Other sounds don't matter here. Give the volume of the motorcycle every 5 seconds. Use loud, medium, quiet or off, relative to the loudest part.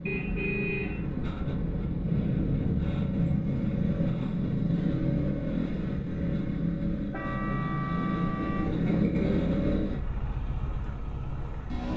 loud, loud, medium.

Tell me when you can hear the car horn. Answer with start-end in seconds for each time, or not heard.
0.1-2.0, 7.1-8.7.